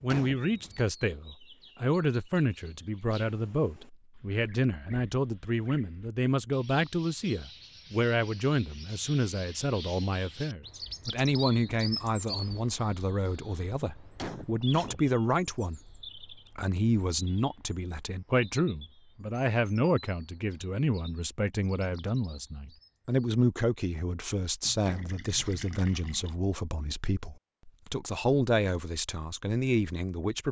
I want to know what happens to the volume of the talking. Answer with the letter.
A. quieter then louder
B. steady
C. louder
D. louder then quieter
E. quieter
B.